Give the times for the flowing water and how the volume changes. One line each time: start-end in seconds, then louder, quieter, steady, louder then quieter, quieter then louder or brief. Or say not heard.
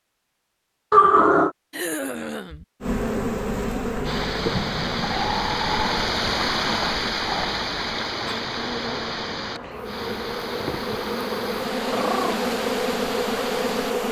4.0-13.9 quieter.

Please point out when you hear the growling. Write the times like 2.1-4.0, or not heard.
0.9-1.5, 5.0-7.6, 11.9-12.4.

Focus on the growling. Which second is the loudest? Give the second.
1 s.